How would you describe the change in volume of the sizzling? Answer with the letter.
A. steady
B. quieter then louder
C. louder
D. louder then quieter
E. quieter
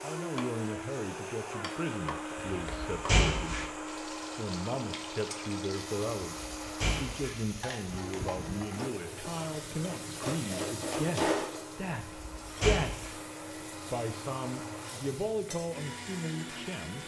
D.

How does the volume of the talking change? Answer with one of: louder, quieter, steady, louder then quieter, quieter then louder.
steady.